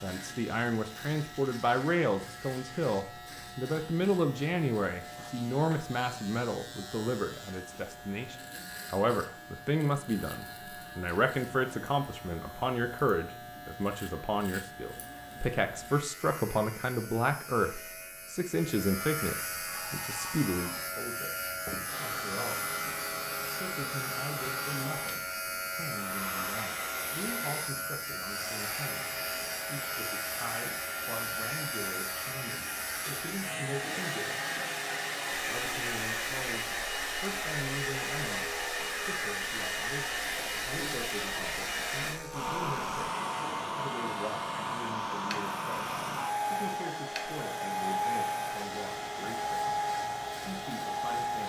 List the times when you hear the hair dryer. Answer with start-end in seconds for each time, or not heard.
19.6-51.4.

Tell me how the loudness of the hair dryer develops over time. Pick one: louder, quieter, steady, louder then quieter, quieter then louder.
louder.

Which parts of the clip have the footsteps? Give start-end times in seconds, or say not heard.
not heard.